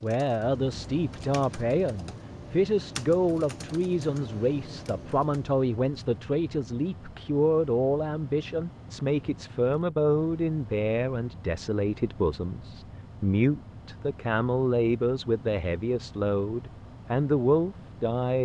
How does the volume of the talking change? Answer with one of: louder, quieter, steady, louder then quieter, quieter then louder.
steady.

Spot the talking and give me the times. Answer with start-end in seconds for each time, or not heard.
0.0-18.3.